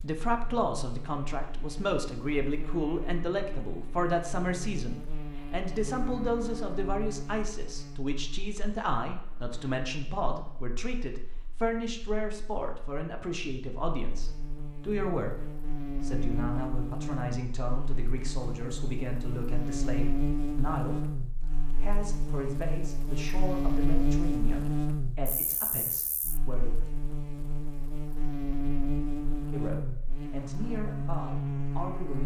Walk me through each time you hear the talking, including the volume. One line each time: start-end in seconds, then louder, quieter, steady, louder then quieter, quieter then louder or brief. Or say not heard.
0.0-26.8 quieter
29.5-32.2 brief.